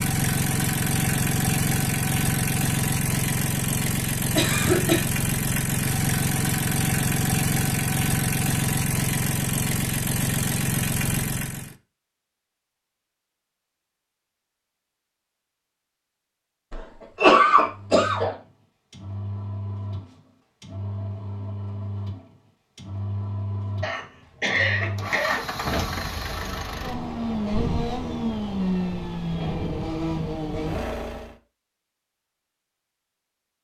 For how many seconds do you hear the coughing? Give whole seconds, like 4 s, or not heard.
4 s.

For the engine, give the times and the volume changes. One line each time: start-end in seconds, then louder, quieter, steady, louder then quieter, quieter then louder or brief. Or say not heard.
0.0-11.8 steady
17.6-31.4 louder.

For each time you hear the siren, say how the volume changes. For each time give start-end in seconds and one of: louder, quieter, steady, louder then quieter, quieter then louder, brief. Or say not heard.
not heard.